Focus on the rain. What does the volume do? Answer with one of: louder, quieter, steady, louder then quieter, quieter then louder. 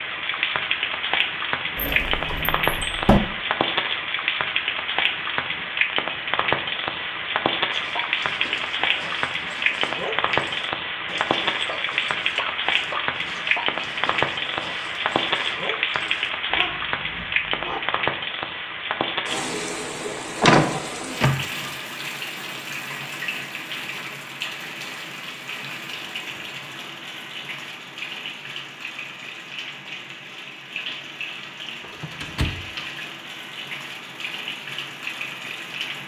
quieter.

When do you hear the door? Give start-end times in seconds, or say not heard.
1.8-3.2, 20.4-21.7, 31.8-32.7.